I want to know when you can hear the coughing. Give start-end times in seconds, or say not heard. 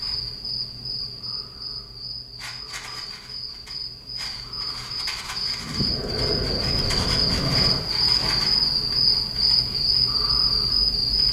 not heard.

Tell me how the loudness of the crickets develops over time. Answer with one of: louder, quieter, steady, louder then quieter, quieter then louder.
louder.